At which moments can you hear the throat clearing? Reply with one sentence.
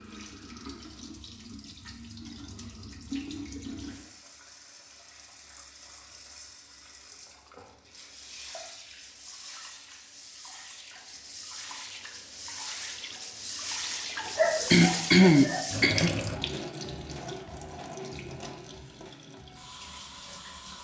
The throat clearing can be heard from 14.2 to 16.1 s.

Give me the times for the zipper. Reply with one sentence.
The zipper can't be heard in this clip.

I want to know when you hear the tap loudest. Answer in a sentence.
The volume of the tap peaks at 16 seconds.